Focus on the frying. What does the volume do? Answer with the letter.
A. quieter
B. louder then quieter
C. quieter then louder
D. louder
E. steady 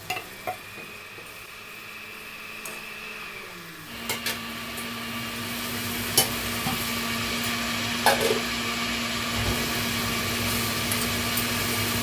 B.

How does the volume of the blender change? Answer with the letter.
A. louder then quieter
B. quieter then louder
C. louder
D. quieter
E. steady
C.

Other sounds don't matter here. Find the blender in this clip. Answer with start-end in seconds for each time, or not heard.
0.0-11.9.